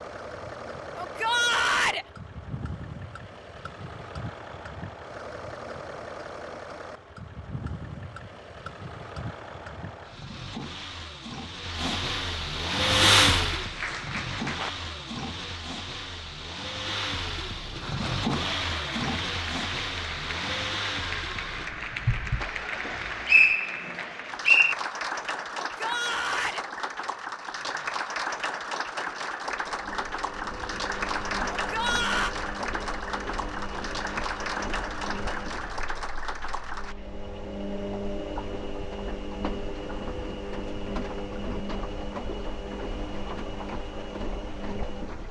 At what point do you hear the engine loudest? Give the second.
13 s.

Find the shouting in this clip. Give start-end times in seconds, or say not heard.
0.9-2.0, 25.8-26.6, 31.5-32.4.